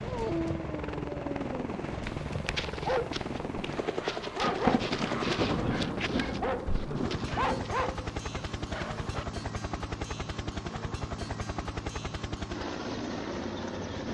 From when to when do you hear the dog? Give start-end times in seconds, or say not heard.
0.0-9.2.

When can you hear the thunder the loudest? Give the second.
5 s.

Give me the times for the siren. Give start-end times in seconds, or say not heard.
not heard.